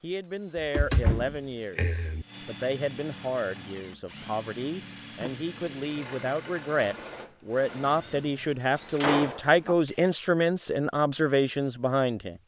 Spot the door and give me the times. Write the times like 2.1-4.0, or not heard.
0.6-2.2, 5.2-6.0, 8.8-9.8.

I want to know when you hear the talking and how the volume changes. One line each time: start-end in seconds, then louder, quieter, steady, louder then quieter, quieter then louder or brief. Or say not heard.
0.0-12.4 louder.